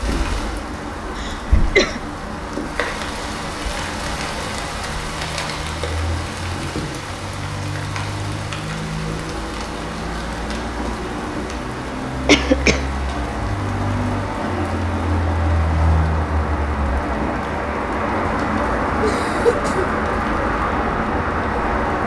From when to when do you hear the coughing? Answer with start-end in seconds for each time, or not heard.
1.1-2.0, 12.2-12.8, 19.0-19.9.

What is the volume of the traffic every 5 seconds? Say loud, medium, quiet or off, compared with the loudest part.
medium, medium, medium, loud, loud.